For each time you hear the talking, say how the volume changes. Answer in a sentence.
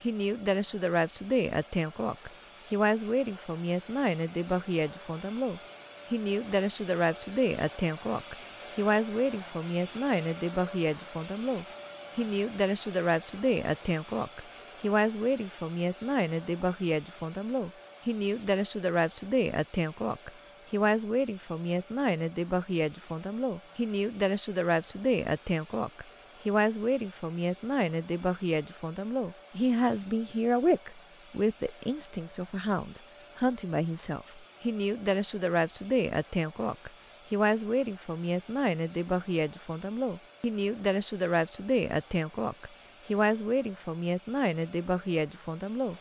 The talking can be heard from 0.0 to 45.9 s, at a steady volume.